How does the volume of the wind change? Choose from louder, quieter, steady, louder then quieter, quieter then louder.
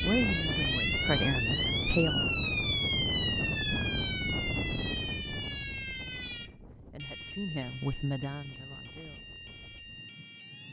quieter.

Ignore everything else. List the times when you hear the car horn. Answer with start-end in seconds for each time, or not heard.
not heard.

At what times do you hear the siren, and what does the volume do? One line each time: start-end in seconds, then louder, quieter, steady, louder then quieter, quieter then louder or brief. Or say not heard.
0.0-10.6 quieter.